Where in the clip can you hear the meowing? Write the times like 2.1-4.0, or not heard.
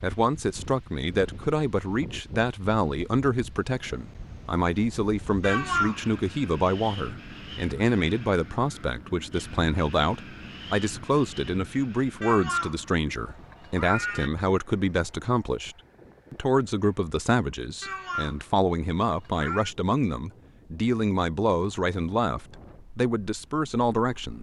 5.4-6.1, 12.2-14.3, 17.8-19.7.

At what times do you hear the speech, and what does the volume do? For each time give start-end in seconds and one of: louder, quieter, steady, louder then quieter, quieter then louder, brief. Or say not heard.
0.0-24.3 steady.